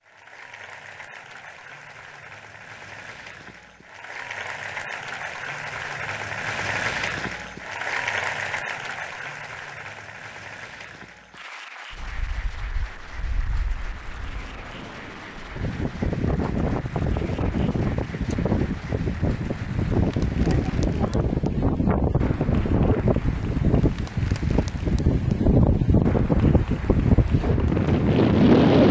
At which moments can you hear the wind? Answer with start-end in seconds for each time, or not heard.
11.9-28.8.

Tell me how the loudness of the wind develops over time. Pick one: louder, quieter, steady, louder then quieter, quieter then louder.
louder.